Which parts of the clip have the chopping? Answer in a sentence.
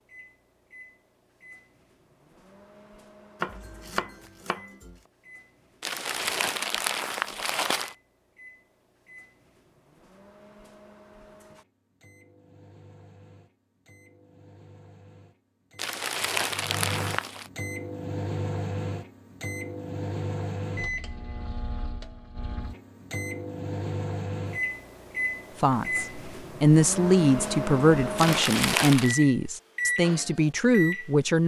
You can hear the chopping from 3.4 to 5.0 s.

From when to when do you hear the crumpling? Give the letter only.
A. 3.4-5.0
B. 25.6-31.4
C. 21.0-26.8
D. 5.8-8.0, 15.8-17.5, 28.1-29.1
D.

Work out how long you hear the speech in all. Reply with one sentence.
You can hear the speech for 6 seconds altogether.